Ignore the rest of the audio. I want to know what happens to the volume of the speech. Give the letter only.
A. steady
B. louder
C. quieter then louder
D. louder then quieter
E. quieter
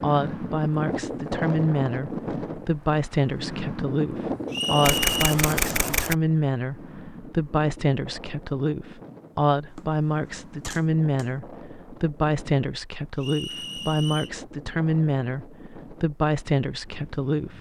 A.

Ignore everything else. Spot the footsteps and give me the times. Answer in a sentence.
The footsteps can't be heard in this clip.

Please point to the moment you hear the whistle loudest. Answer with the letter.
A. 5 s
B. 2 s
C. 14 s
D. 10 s
A.